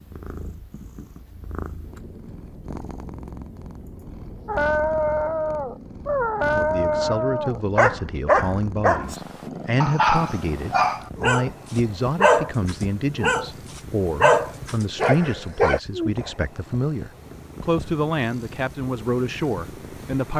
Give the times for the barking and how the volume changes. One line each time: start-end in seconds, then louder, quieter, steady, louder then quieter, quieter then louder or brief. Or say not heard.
4.5-15.8 steady.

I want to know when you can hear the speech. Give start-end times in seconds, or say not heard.
6.3-20.3.